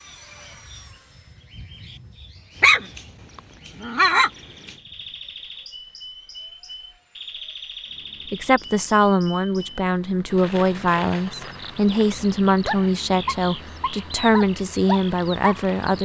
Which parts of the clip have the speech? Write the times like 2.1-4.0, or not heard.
8.3-16.0.